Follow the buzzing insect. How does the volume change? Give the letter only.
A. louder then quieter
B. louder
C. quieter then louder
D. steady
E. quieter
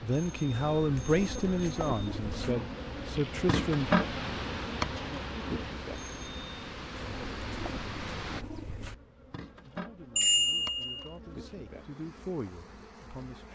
A.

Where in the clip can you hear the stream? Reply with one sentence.
The stream can be heard from 0.0 to 8.4 s.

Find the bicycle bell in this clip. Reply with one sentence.
The bicycle bell can be heard from 0.1 to 2.1 s, from 6.0 to 6.5 s and from 10.2 to 11.1 s.